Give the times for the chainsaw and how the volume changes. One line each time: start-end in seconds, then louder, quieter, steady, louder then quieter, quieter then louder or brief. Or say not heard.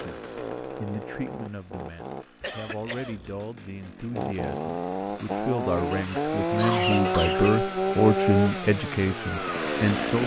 0.0-10.2 quieter then louder.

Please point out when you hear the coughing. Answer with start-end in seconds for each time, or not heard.
2.4-3.4, 5.8-7.7.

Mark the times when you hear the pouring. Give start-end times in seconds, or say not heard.
not heard.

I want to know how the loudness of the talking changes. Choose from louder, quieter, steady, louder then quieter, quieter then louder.
louder.